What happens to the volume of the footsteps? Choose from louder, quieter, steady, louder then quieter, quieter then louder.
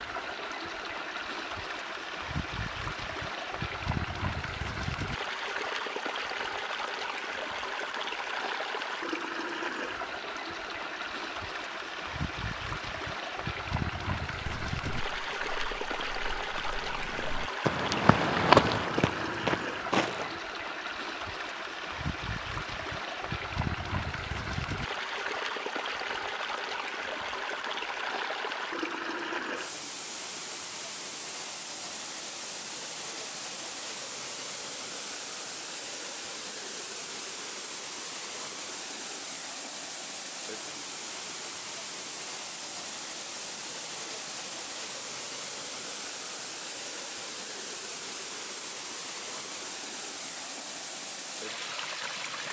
louder then quieter.